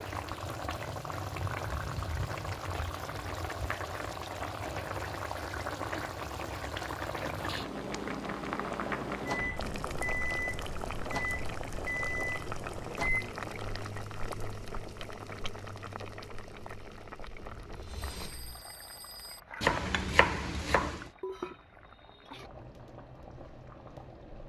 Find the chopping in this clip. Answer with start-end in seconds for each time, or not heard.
19.6-21.1.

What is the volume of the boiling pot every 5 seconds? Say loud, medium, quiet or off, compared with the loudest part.
loud, loud, loud, medium, medium.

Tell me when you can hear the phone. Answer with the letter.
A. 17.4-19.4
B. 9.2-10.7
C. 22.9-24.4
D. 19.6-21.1
A.